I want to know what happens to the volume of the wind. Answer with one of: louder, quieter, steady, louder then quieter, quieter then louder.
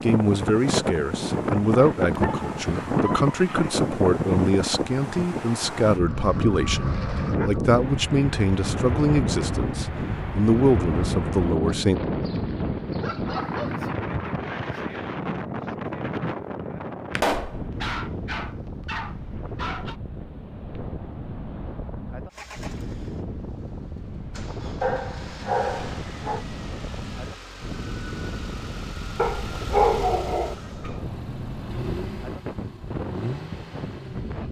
quieter.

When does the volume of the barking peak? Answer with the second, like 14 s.
30 s.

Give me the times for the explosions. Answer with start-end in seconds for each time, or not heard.
17.1-17.6.